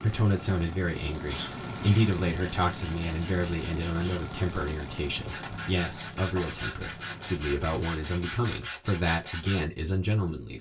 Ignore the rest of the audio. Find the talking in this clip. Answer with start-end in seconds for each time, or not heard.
0.0-10.5.